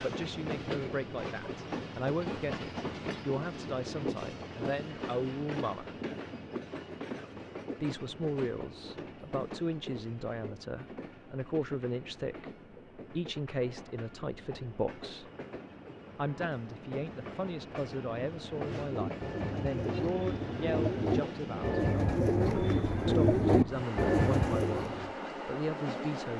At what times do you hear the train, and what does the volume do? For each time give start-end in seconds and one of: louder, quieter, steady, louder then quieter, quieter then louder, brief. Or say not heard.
0.0-26.3 quieter then louder.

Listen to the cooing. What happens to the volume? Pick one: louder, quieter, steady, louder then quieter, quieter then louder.
louder.